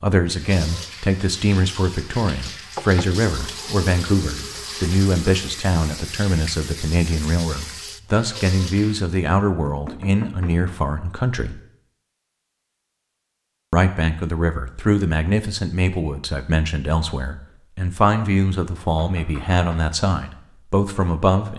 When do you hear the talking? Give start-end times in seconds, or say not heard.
0.0-11.6, 13.7-21.5.